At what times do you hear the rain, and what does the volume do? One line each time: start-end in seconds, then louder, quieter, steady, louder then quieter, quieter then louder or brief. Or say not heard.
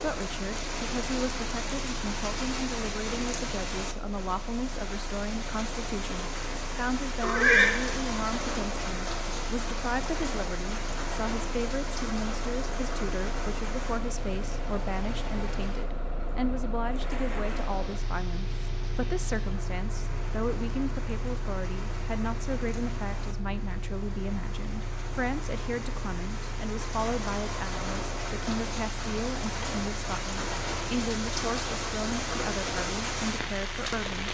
0.0-34.2 quieter then louder.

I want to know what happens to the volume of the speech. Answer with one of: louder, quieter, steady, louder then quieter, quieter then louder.
steady.